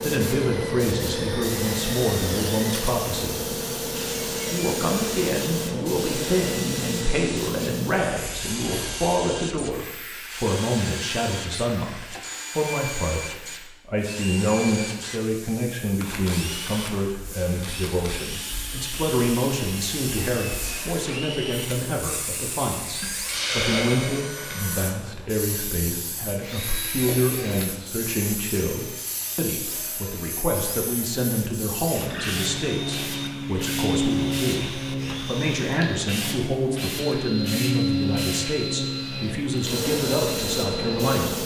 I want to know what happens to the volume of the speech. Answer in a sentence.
The loudness of the speech stays about the same.